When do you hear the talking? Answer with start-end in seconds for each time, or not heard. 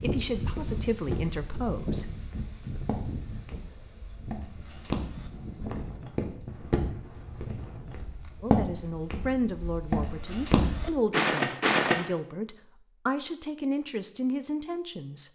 0.0-2.1, 8.4-15.2.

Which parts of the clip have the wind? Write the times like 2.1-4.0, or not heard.
0.0-8.0.